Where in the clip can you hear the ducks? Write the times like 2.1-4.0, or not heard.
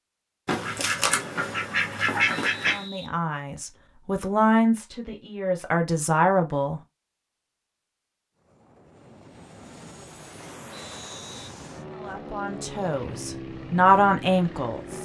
0.5-2.9.